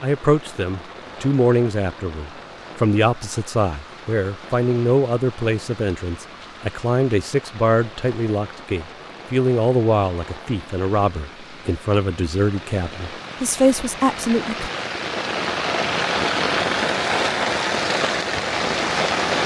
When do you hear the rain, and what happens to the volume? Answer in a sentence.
The rain can be heard from 0.0 to 19.4 s, getting louder.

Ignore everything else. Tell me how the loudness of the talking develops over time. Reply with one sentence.
The loudness of the talking stays about the same.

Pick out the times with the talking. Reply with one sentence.
The talking can be heard from 0.0 to 14.7 s.